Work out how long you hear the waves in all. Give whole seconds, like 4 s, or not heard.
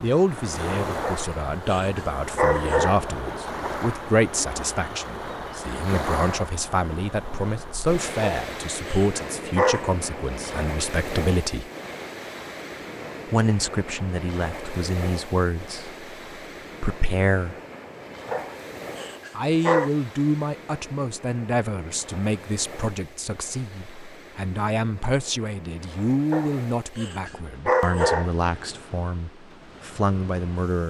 31 s.